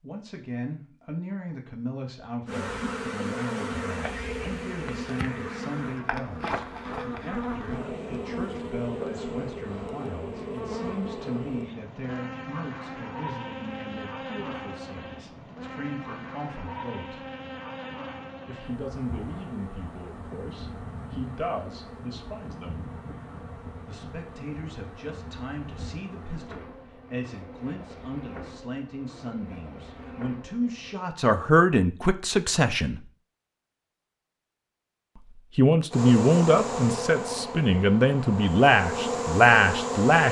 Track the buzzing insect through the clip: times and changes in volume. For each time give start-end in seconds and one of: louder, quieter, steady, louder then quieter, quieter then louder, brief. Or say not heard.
2.5-31.0 quieter
35.9-40.2 quieter then louder.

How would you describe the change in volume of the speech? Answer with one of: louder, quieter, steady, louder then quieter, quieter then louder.
louder.